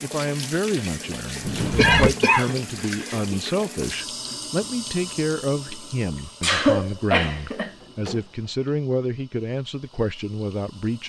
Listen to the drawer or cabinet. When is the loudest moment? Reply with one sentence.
The loudest moment of the drawer or cabinet is at 2 seconds.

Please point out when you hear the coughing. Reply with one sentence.
You can hear the coughing from 1.8 to 3.5 s and from 6.4 to 7.7 s.